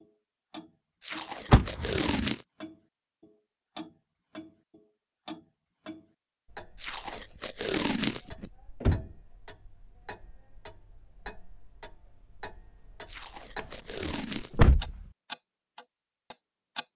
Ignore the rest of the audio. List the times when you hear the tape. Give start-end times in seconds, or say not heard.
1.0-2.5, 6.8-8.5, 13.1-14.8.